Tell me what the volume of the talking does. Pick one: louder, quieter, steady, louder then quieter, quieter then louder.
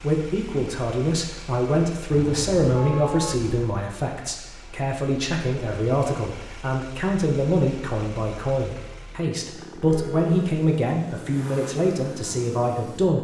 steady.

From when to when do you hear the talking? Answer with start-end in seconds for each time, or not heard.
0.0-13.1.